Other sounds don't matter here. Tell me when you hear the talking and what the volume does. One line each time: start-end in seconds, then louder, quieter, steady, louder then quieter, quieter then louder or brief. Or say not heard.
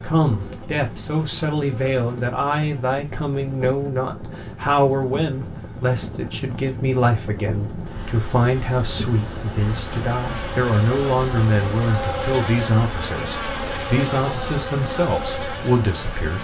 0.0-16.4 steady.